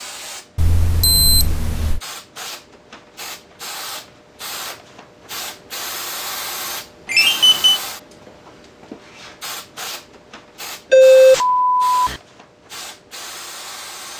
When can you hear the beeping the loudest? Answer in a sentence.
The volume of the beeping peaks at 11 seconds.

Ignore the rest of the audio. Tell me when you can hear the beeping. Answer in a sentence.
You can hear the beeping from 0.6 to 2.0 s, from 7.0 to 7.8 s and from 10.9 to 12.2 s.